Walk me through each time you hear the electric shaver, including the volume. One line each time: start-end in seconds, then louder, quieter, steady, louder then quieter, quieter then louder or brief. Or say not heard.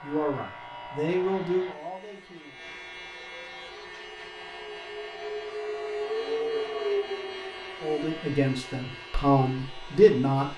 0.0-10.5 louder then quieter.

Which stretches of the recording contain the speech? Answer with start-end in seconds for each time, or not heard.
0.0-2.7, 7.8-10.5.